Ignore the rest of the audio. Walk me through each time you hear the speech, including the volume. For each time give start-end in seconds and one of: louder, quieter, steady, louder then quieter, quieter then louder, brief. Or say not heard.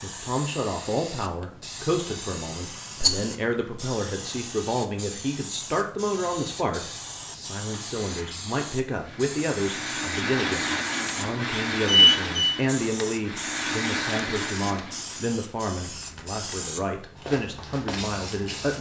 0.0-18.7 steady.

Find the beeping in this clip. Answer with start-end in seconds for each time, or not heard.
11.8-12.5.